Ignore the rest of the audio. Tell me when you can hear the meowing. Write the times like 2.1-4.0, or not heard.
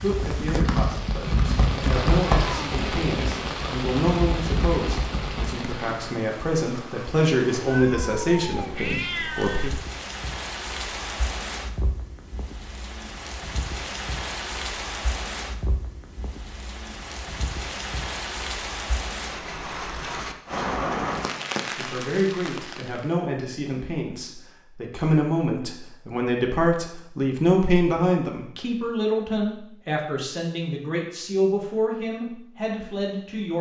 7.5-9.7.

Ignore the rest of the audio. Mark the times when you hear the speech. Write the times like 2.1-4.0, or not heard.
0.0-9.7, 21.8-33.5.